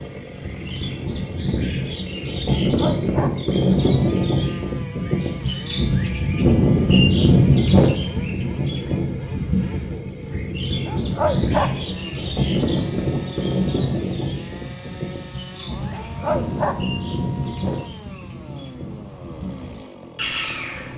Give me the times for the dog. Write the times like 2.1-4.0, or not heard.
2.6-3.3, 10.8-11.7, 15.9-16.8.